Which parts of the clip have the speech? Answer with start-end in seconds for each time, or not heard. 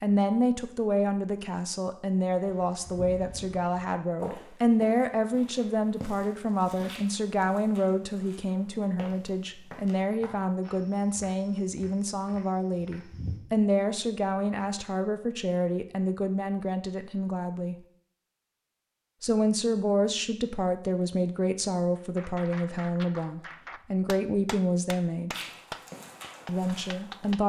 0.0-17.8, 19.2-25.4, 26.4-27.4.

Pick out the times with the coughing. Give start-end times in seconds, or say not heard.
not heard.